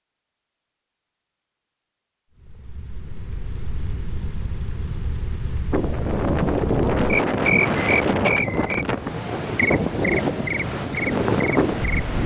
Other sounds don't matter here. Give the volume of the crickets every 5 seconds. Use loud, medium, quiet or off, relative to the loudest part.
medium, loud, loud.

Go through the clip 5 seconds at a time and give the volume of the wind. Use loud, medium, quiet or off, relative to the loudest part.
off, loud, loud.